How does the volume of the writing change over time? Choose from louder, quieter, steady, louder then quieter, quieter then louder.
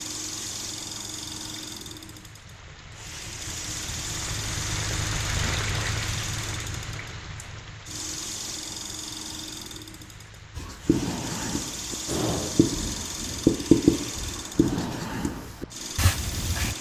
louder then quieter.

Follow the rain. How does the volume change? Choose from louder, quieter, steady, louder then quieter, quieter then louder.
louder then quieter.